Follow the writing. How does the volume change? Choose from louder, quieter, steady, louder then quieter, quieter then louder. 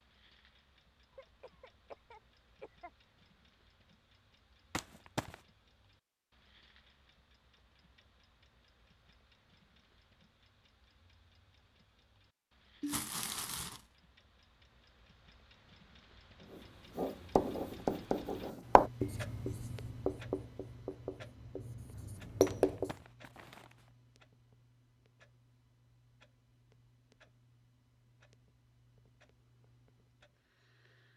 quieter then louder.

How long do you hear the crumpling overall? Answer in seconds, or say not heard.
3 s.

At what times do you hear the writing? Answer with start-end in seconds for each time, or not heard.
16.9-22.9.